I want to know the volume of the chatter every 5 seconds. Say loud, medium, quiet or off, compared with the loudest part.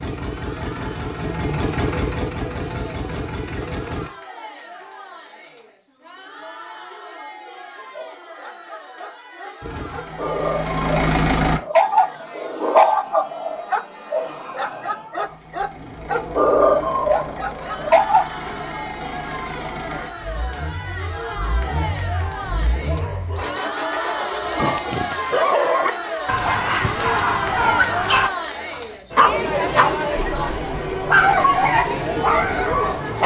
quiet, quiet, quiet, medium, medium, loud, loud.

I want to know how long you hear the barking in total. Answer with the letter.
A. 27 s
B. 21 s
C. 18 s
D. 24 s
B.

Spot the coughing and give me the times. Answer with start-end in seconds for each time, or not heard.
24.6-25.1.